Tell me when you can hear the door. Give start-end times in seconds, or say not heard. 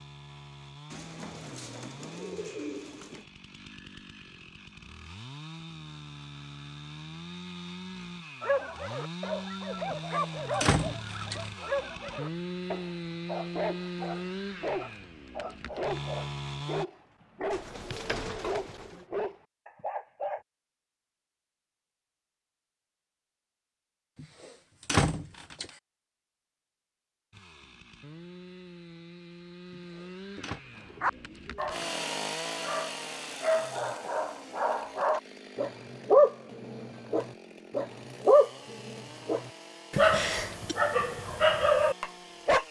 9.9-11.4, 24.1-25.7, 29.7-30.6.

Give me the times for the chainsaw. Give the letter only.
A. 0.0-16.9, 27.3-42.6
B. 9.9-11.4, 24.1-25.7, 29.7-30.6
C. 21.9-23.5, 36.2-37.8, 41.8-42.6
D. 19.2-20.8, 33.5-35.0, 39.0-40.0
A.